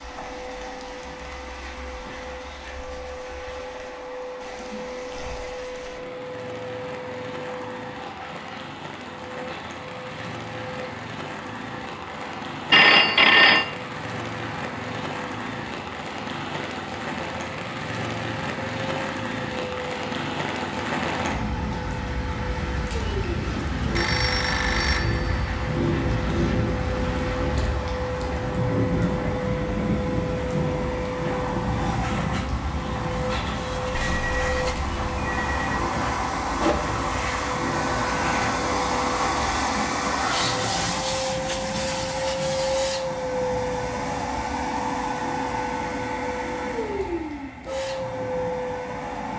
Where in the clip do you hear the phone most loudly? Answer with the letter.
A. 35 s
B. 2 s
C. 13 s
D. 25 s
C.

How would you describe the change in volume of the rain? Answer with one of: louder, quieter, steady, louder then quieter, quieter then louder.
louder then quieter.